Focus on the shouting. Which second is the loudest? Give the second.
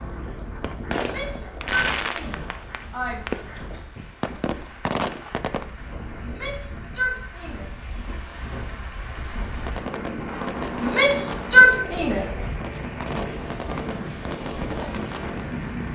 12 s.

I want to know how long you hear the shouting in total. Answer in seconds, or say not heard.
6 s.